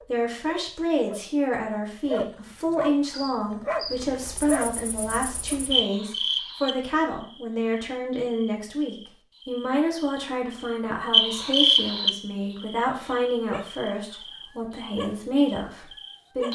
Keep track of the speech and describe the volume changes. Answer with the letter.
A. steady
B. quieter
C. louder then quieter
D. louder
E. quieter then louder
A.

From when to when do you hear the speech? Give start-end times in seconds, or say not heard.
0.1-16.5.